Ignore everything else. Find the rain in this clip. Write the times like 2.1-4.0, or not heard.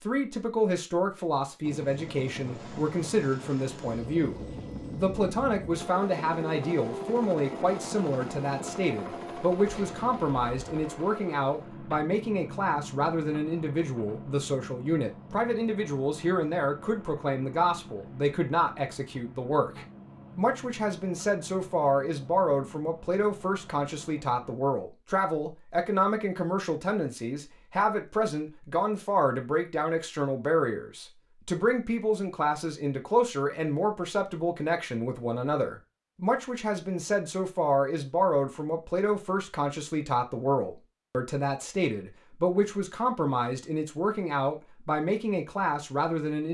not heard.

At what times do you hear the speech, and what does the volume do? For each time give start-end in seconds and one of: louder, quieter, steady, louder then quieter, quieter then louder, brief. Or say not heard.
0.0-46.4 steady.